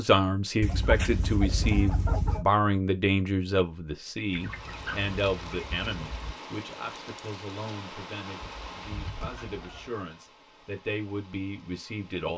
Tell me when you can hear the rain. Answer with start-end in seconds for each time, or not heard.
4.2-12.3.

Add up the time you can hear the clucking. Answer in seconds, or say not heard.
5 s.